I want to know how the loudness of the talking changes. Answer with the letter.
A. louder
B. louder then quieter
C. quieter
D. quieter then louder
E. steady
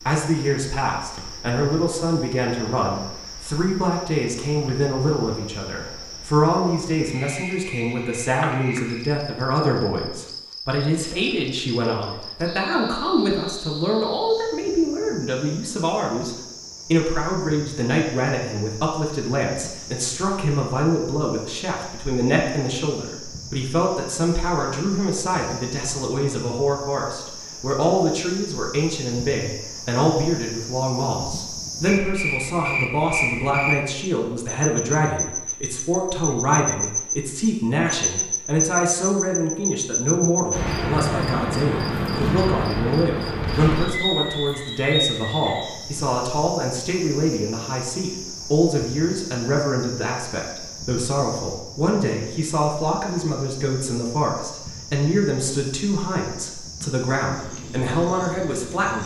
E.